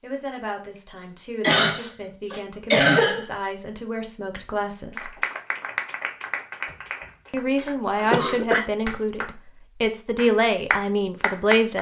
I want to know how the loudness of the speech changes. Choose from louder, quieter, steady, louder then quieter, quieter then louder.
louder.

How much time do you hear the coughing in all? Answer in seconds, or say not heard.
3 s.